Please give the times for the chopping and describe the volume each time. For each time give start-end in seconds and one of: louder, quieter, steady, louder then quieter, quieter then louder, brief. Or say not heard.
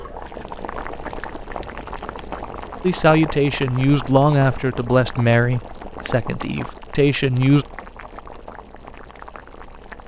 not heard.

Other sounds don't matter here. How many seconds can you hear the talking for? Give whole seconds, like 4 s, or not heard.
5 s.